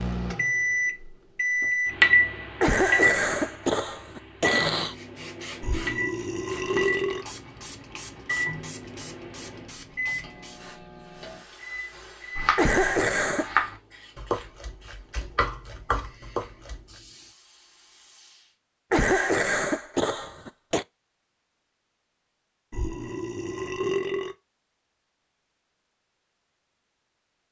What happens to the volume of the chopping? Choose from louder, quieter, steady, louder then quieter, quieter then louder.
louder then quieter.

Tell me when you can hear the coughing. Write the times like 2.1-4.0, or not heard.
2.6-5.0, 12.6-13.5, 18.9-20.9.